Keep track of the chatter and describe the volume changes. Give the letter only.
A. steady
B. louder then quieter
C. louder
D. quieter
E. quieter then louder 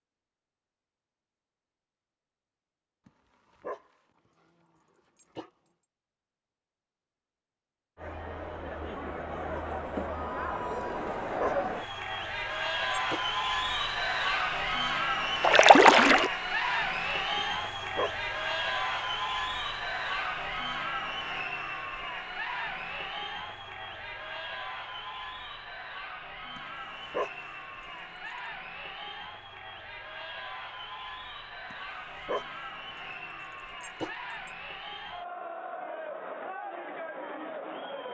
D.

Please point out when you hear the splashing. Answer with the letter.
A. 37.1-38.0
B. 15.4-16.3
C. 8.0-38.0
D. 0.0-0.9
B.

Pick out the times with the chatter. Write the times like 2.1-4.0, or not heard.
8.0-38.0.